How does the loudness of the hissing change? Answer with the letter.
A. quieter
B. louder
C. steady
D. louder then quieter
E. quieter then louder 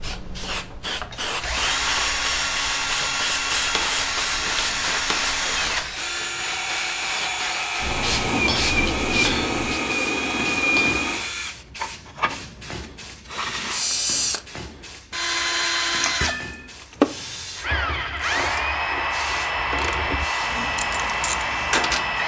A.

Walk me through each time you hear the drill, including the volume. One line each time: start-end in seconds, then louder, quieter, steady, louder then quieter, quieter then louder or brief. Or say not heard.
0.0-22.2 steady.